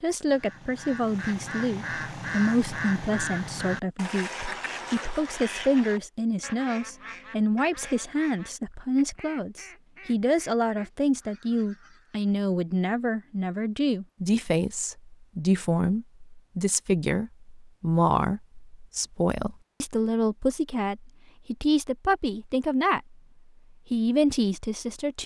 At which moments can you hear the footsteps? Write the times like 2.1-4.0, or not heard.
not heard.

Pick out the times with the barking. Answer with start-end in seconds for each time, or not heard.
not heard.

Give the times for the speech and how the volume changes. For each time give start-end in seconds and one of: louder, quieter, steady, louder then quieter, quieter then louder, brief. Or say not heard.
0.0-23.1 steady
23.9-25.2 brief.